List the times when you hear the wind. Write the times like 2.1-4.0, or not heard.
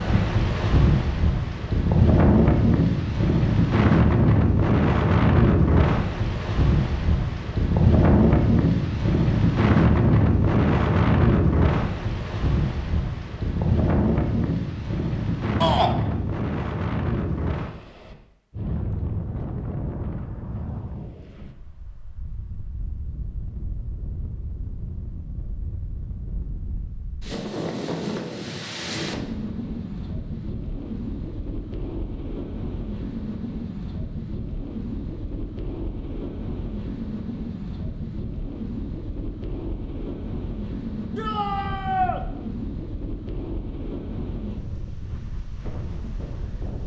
0.0-46.8.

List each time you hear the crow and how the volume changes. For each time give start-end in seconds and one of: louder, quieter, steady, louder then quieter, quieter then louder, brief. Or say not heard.
not heard.